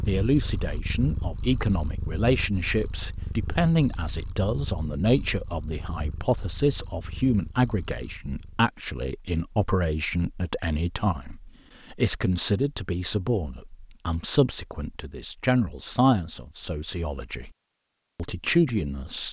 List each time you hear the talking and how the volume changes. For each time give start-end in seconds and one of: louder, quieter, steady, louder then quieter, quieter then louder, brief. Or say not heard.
0.1-17.5 steady
18.1-19.2 brief.